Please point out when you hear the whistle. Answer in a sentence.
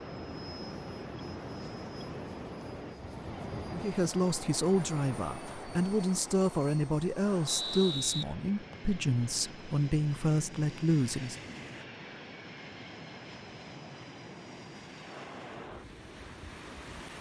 You can hear the whistle from 7.5 to 8.9 s.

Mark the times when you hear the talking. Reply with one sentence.
The talking can be heard from 3.7 to 11.3 s.